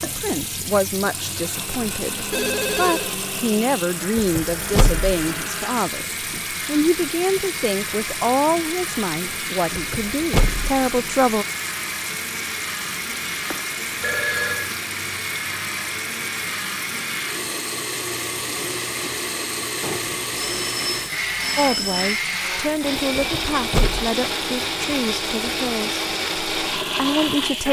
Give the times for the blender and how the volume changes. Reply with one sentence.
You can hear the blender from 0.0 to 27.6 s, getting louder.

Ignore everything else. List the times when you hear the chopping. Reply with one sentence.
You can't hear the chopping here.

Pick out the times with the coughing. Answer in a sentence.
You can't hear the coughing here.